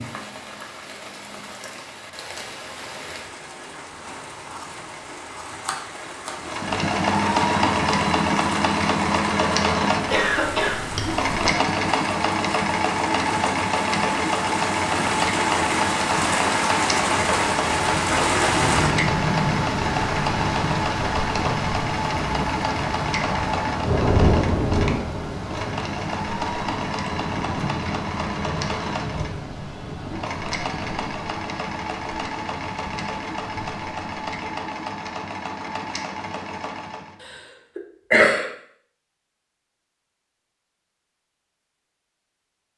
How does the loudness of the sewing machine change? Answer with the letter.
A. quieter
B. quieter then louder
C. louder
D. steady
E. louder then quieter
A.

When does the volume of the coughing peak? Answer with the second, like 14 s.
38 s.